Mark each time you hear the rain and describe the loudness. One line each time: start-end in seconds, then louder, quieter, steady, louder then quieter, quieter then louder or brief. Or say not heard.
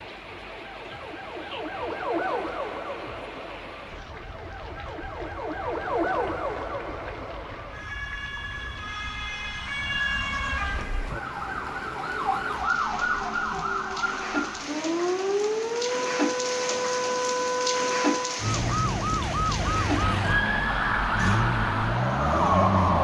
0.0-23.0 louder.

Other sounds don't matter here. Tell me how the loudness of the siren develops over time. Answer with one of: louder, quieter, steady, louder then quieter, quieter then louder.
louder.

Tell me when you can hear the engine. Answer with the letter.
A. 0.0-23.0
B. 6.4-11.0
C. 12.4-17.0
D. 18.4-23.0
D.